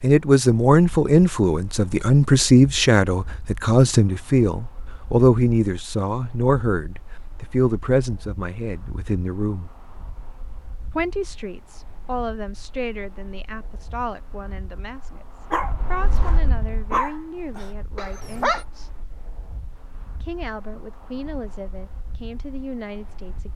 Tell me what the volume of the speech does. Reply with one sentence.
The loudness of the speech goes down.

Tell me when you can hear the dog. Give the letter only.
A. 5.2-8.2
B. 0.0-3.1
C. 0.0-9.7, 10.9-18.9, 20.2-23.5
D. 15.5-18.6
D.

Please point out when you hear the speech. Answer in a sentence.
You can hear the speech from 0.0 to 9.7 s, from 10.9 to 18.9 s and from 20.2 to 23.5 s.